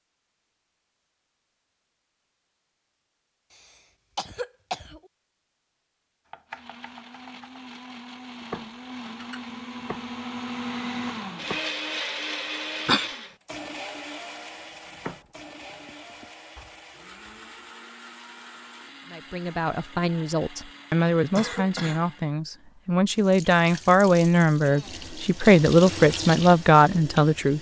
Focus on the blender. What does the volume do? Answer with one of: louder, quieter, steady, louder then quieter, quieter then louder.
louder then quieter.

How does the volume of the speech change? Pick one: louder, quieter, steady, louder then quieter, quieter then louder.
louder.